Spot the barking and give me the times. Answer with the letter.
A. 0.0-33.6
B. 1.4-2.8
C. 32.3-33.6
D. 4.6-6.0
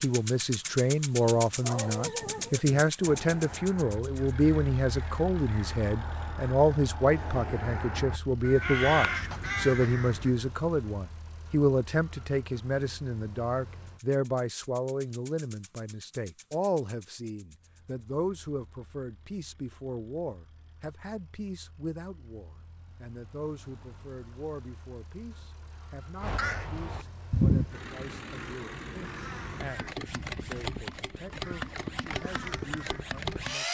B.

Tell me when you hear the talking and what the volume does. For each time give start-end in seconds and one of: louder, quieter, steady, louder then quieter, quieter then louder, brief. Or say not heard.
0.0-33.6 quieter.